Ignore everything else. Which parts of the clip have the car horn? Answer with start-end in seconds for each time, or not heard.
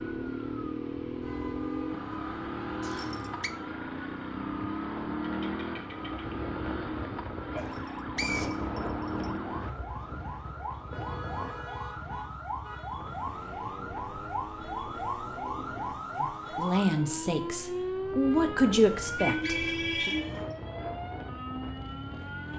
1.2-3.5, 10.8-12.9, 19.0-20.4.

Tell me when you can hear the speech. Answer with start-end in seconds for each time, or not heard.
16.1-20.1.